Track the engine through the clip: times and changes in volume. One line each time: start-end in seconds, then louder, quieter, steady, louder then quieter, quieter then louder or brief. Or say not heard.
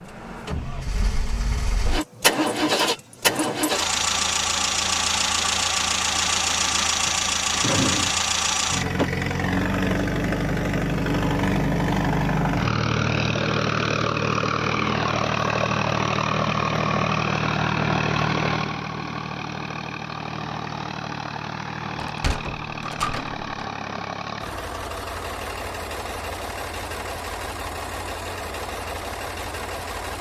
0.0-30.1 quieter.